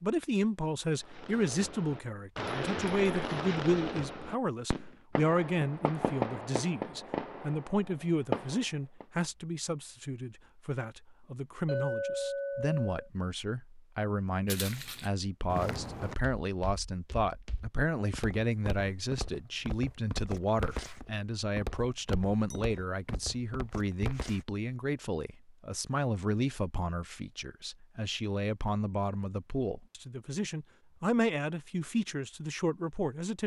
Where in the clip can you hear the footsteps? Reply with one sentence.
You can hear the footsteps from 14.4 to 24.4 s.